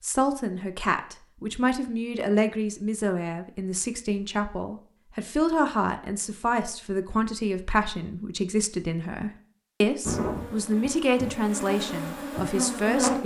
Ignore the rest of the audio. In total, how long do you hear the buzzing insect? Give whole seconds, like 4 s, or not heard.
3 s.